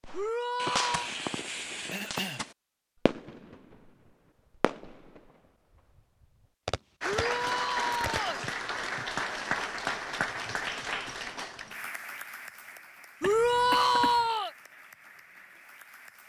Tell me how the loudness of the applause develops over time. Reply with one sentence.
The loudness of the applause goes down.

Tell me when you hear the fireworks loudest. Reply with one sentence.
The volume of the fireworks peaks at 1 second.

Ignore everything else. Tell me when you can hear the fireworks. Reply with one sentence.
The fireworks can be heard from 0.0 to 3.9 s, from 4.6 to 5.3 s and from 6.7 to 8.4 s.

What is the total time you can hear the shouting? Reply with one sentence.
The shouting can be heard for 4 seconds in total.